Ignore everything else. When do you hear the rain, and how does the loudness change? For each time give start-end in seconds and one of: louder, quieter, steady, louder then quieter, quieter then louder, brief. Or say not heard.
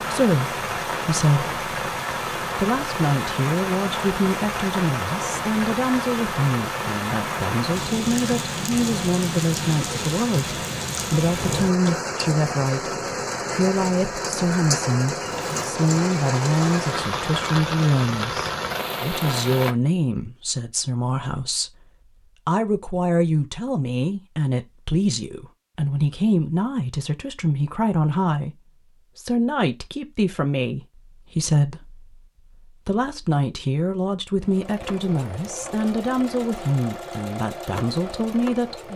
0.0-19.8 steady.